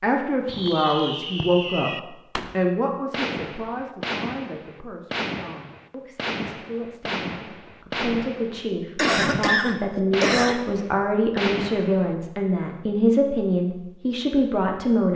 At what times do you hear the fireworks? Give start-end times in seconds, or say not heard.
0.5-12.2.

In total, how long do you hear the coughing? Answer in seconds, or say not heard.
2 s.